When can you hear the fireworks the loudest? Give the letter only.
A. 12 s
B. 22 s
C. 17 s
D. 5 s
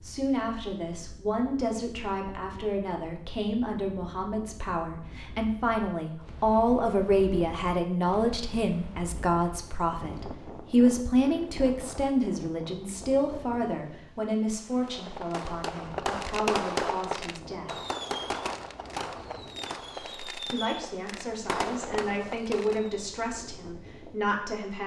C.